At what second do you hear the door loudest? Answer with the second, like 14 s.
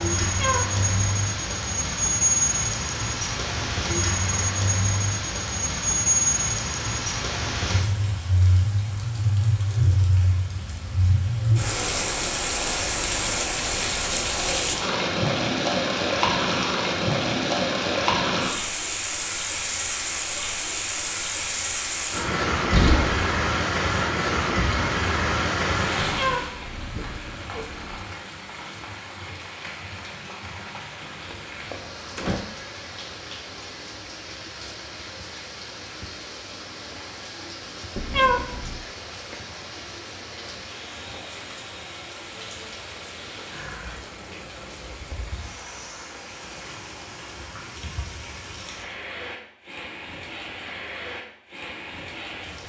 23 s.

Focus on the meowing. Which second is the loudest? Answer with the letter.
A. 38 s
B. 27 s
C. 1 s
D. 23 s
A.